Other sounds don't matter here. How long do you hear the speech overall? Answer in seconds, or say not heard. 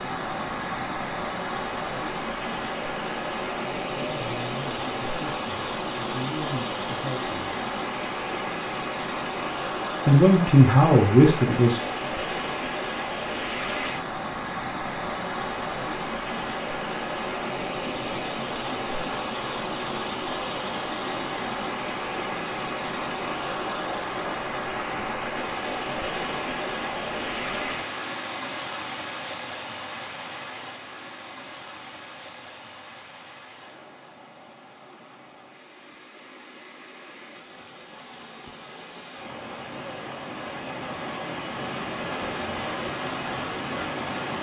5 s.